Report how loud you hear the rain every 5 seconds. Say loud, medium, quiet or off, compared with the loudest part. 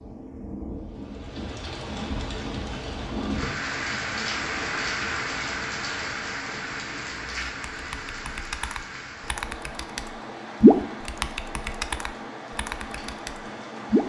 loud, loud, medium.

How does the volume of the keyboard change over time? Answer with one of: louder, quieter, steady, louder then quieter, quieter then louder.
louder then quieter.